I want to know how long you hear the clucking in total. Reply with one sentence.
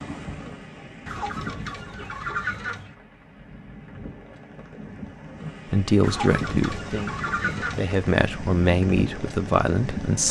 You can hear the clucking for 4 seconds altogether.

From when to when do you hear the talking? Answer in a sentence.
The talking can be heard from 5.7 to 10.2 s.